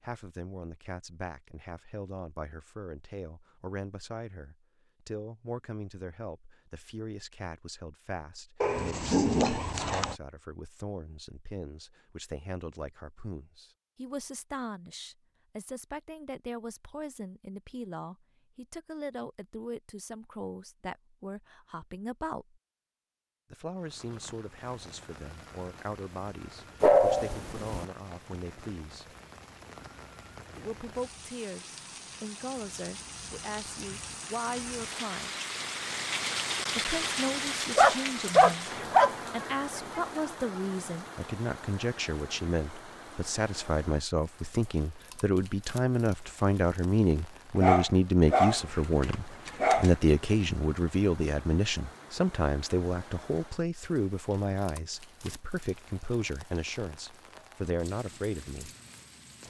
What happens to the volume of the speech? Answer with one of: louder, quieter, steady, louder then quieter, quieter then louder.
louder.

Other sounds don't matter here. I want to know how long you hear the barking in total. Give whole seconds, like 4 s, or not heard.
6 s.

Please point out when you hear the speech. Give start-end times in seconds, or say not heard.
0.0-22.6, 23.5-29.1, 30.6-35.4, 36.8-58.7.